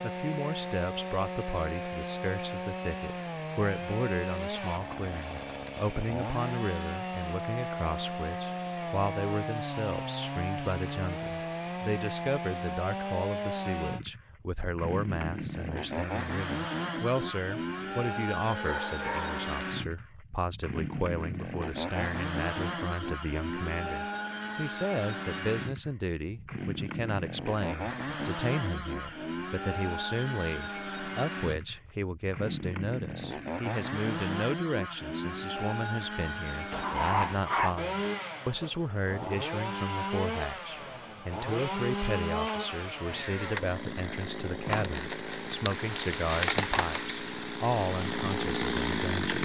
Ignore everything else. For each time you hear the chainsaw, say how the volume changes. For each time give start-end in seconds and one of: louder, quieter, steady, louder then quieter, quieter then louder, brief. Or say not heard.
0.0-49.3 steady.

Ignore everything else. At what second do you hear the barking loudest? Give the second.
37 s.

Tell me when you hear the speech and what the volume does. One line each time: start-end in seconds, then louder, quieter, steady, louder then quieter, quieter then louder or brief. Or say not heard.
0.0-49.3 steady.